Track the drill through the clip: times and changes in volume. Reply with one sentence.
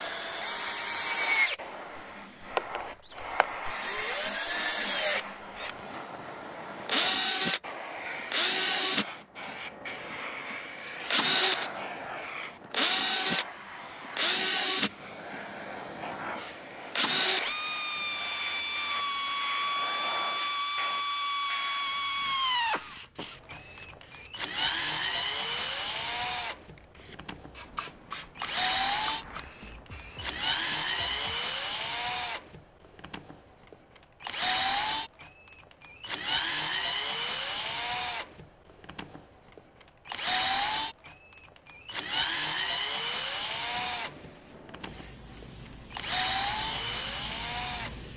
The drill can be heard from 0.0 to 48.1 s, at a steady volume.